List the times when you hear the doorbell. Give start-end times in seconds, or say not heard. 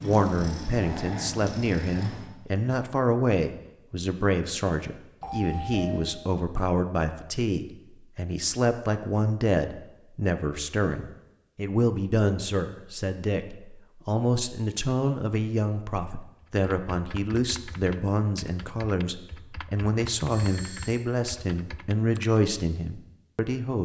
5.2-6.0, 20.2-21.0.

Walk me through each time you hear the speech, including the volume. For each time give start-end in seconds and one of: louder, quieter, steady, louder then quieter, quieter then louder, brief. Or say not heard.
0.0-23.8 steady.